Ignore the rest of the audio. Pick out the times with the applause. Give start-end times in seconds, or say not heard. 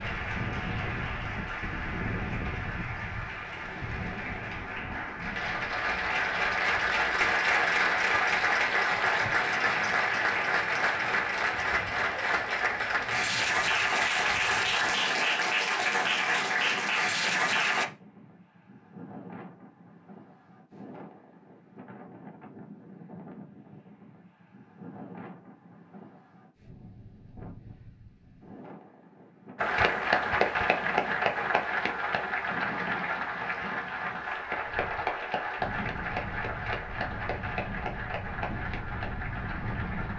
0.0-17.9, 29.6-40.1.